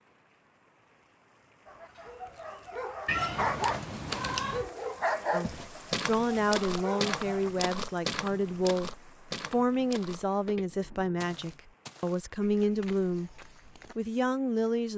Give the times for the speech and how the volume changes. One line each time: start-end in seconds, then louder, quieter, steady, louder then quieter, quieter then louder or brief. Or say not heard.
5.3-14.9 steady.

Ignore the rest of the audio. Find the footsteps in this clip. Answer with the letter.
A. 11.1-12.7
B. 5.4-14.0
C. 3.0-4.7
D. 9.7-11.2
B.